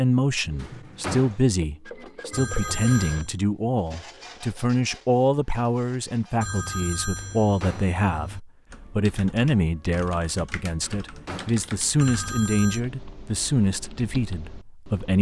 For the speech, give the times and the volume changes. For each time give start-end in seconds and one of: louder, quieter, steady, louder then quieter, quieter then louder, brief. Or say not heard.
0.0-15.1 steady.